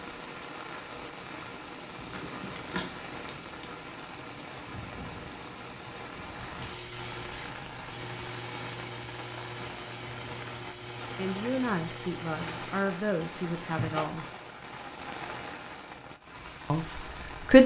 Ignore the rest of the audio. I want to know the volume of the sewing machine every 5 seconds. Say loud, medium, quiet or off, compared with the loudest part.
off, loud, loud, off.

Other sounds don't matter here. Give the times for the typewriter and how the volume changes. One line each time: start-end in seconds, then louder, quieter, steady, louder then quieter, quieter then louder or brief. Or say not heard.
not heard.